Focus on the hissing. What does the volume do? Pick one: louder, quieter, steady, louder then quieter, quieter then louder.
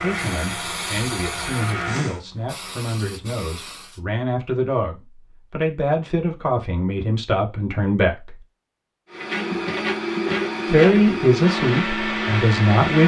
quieter then louder.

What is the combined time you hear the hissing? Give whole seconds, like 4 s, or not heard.
4 s.